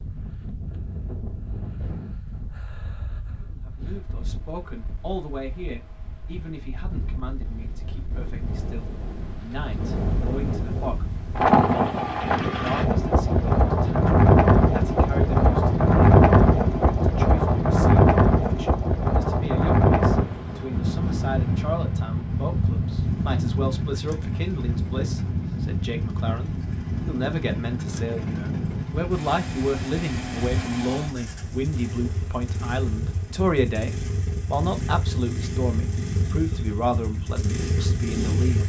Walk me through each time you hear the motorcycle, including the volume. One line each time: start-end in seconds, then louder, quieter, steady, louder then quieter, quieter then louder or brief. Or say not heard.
23.0-38.6 louder.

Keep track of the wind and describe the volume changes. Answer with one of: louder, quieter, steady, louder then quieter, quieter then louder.
louder then quieter.